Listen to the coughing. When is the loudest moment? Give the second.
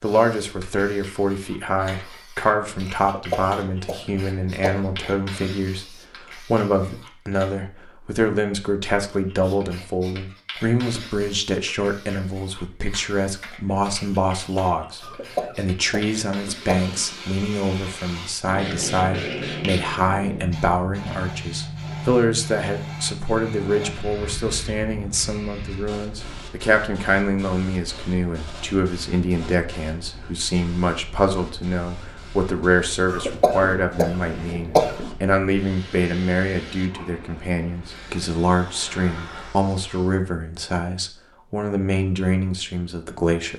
35 s.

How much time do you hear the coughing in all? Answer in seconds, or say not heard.
6 s.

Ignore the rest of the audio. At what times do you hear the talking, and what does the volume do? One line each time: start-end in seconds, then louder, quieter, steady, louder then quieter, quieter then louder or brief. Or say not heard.
0.0-43.5 steady.